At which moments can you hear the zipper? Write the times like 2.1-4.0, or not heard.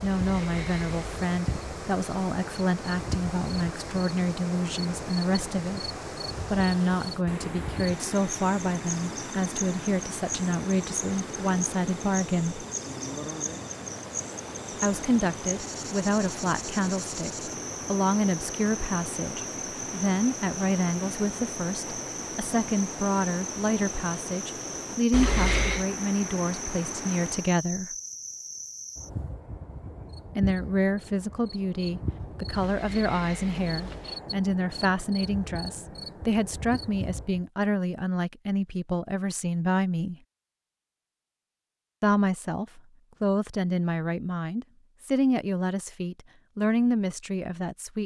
0.0-1.1, 25.1-25.9, 32.5-34.2.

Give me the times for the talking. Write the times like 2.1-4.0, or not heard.
0.0-5.9, 6.5-12.7, 14.8-27.9, 30.4-40.1, 42.0-48.0.